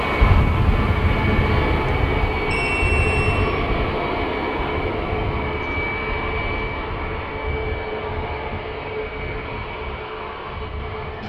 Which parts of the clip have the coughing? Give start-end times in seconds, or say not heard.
not heard.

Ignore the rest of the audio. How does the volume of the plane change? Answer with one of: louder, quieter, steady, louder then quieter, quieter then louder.
quieter.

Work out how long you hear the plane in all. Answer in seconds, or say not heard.
11 s.